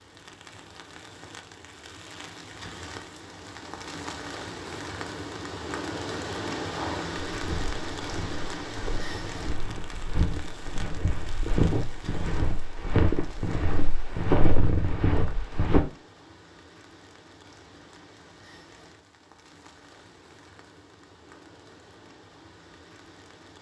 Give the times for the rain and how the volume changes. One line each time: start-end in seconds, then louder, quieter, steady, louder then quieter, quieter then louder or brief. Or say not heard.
0.0-23.5 louder then quieter.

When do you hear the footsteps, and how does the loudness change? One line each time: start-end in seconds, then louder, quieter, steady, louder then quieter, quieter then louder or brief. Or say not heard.
6.6-15.8 louder.